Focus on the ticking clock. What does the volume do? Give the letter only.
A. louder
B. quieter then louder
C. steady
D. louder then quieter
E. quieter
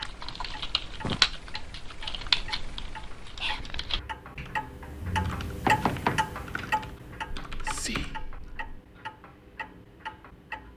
D.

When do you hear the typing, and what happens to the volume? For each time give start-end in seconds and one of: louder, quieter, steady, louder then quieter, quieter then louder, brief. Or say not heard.
0.0-8.2 quieter.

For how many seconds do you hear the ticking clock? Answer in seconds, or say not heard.
11 s.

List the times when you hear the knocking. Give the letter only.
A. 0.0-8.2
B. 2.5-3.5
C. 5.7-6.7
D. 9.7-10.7
C.